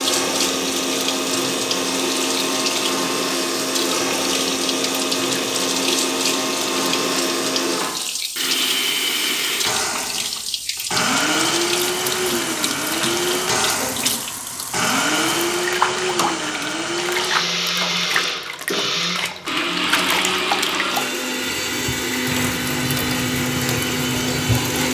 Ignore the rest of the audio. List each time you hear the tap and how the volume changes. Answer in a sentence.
You can hear the tap from 0.0 to 24.8 s, at a steady volume.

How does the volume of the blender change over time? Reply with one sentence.
The loudness of the blender stays about the same.